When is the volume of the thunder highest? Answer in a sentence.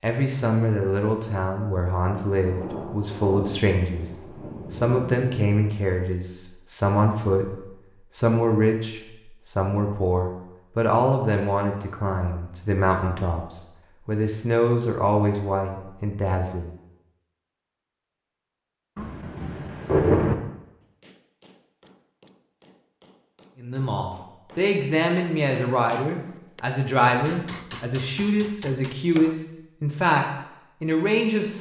The volume of the thunder peaks at 20 seconds.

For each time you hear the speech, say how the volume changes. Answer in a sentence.
The speech can be heard from 0.0 to 16.7 s, at a steady volume; and from 23.6 to 31.5 s, at a steady volume.